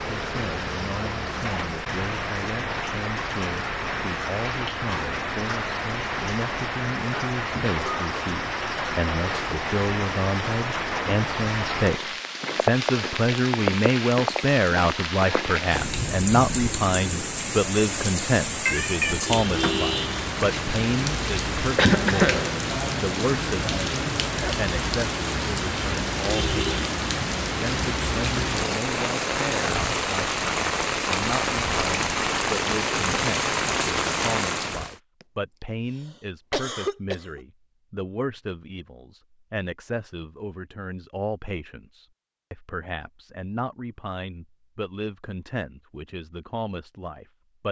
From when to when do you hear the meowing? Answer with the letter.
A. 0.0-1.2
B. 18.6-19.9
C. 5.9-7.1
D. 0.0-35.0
B.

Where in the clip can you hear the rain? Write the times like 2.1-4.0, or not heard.
0.0-35.0.